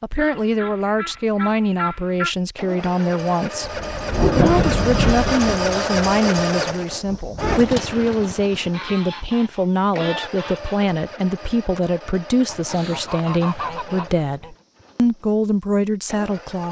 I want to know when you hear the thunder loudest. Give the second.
4 s.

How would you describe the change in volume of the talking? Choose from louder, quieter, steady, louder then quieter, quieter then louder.
steady.